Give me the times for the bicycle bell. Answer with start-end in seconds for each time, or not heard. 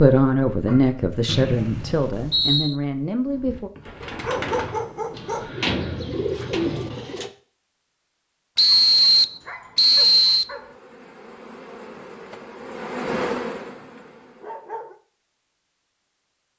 not heard.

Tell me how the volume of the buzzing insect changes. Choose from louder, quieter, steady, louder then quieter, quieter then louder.
louder then quieter.